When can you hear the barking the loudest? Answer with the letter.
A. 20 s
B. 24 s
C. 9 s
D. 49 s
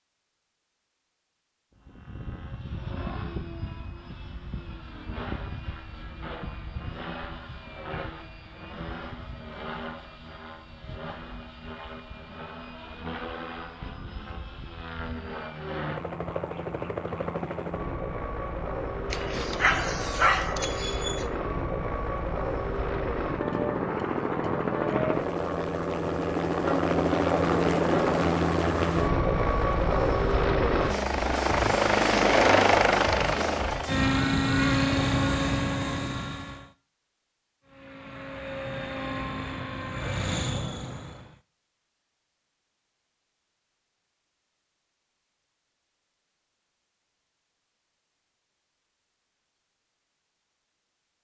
A.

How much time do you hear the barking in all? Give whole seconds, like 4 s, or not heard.
2 s.